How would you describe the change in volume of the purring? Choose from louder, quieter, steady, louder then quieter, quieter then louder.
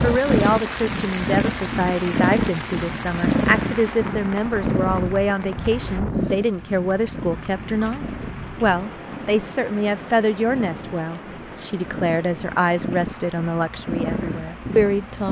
quieter then louder.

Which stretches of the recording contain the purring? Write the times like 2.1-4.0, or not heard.
0.1-15.2.